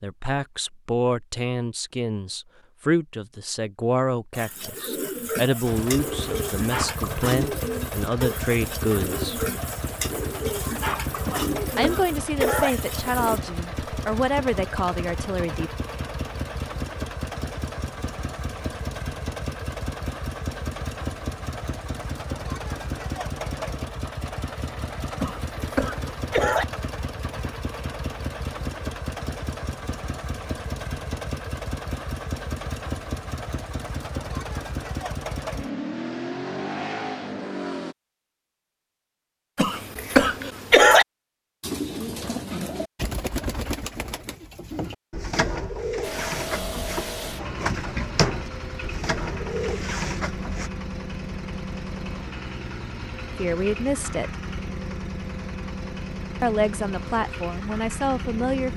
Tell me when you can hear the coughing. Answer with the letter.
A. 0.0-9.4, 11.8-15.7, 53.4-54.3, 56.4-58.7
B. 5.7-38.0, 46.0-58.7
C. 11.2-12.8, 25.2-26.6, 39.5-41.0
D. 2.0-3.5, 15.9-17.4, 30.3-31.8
C.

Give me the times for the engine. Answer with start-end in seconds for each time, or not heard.
5.7-38.0, 46.0-58.7.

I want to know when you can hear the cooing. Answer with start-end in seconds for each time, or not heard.
4.3-13.4, 41.6-50.7.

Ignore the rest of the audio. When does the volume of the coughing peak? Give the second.
41 s.